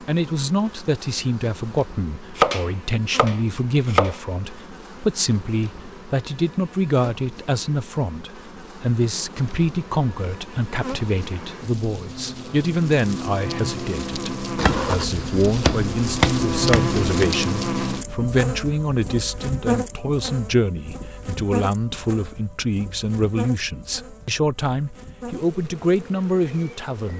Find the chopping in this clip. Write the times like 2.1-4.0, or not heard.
2.4-4.2, 14.6-17.2.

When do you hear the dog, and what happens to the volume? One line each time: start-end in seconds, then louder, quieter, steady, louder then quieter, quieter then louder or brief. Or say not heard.
not heard.